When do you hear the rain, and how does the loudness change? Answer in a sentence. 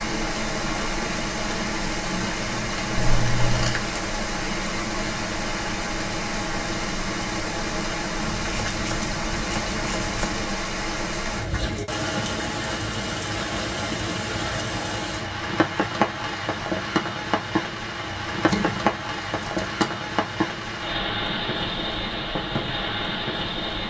You can hear the rain from 0.0 to 23.8 s, at a steady volume.